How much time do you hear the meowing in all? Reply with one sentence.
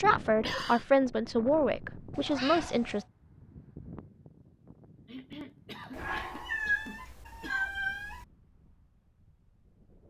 You can hear the meowing for 3 seconds altogether.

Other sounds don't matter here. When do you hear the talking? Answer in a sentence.
You can hear the talking from 0.0 to 3.0 s.